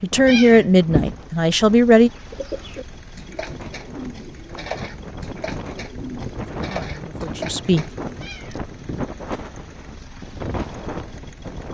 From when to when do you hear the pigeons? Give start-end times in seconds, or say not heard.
2.1-8.1.